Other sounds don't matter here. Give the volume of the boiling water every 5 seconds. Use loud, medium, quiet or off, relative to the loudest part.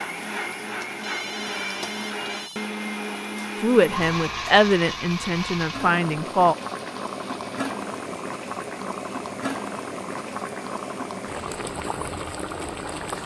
quiet, loud, loud.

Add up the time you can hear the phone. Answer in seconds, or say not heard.
2 s.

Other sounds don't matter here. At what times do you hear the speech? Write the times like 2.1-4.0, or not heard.
3.6-6.5.